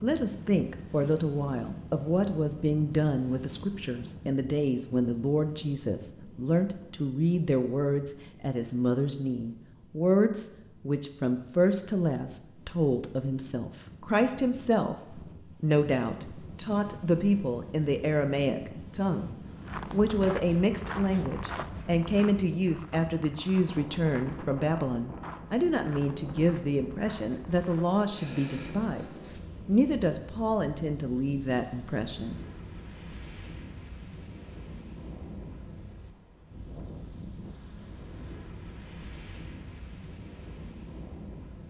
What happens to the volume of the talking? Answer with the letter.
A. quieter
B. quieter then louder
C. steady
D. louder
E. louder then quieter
C.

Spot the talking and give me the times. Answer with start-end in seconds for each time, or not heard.
0.0-32.4.